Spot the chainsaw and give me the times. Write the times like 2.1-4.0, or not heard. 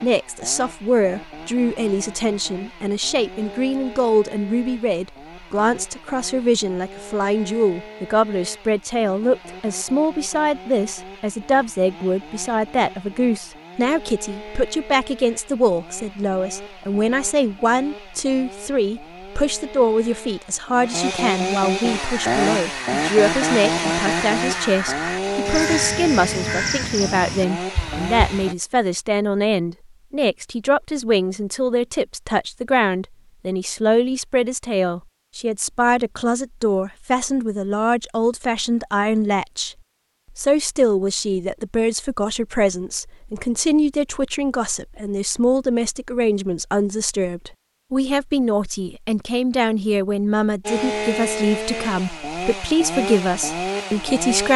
0.0-28.6, 50.6-54.5.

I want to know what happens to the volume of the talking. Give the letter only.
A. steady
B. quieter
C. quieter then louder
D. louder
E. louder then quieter
A.